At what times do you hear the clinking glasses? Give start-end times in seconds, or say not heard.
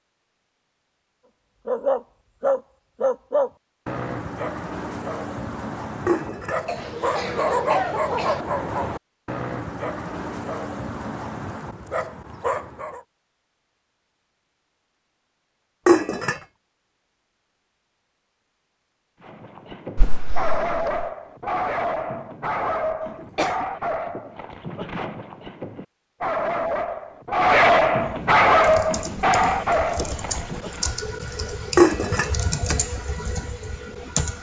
6.0-6.7, 15.8-16.4, 31.8-32.3.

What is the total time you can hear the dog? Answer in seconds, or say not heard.
23 s.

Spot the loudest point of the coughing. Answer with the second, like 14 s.
8 s.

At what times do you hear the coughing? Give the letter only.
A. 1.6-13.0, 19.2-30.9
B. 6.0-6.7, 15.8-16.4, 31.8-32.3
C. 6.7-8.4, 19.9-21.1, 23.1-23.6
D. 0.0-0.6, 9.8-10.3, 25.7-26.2
C.